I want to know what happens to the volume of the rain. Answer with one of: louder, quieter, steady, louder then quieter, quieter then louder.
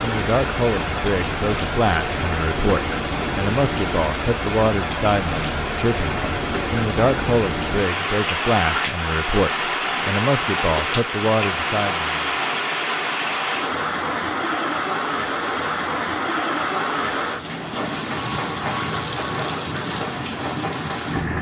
steady.